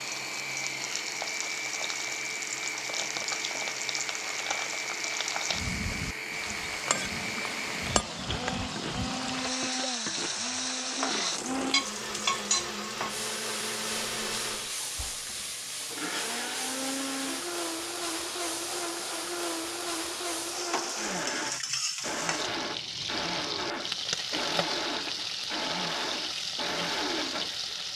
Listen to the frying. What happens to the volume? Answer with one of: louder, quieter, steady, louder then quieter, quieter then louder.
steady.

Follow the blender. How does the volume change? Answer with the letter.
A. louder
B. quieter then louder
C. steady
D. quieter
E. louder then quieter
C.